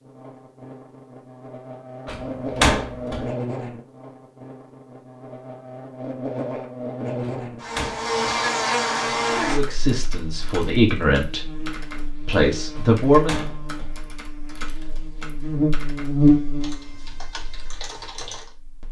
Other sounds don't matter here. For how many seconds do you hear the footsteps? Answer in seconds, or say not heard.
not heard.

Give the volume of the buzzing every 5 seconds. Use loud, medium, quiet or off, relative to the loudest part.
medium, loud, quiet, loud.